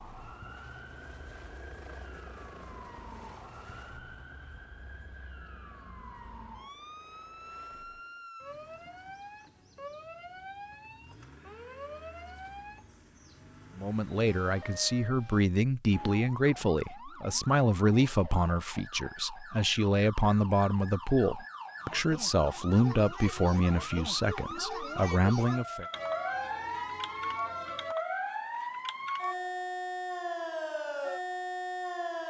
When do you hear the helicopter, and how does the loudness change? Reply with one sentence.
The helicopter can be heard from 0.0 to 8.3 s, getting quieter.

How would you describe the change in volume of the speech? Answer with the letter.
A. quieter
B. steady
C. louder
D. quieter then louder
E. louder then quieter
B.